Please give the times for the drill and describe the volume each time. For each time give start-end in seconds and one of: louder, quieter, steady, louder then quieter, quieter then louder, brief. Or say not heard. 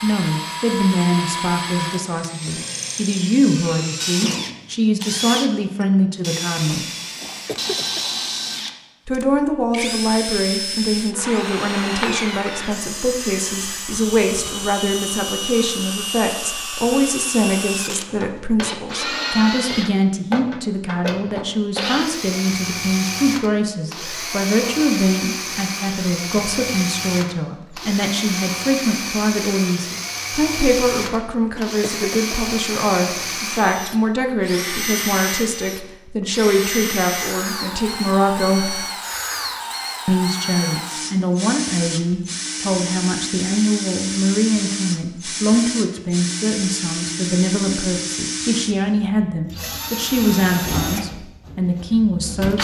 0.0-52.5 steady.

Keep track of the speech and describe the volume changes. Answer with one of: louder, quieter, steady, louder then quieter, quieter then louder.
steady.